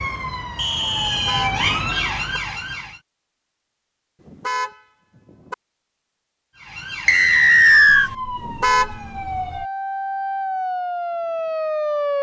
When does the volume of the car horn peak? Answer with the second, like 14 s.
9 s.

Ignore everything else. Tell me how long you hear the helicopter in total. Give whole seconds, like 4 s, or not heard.
not heard.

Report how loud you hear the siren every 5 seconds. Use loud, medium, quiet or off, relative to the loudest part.
loud, medium, loud.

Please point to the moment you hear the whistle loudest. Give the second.
8 s.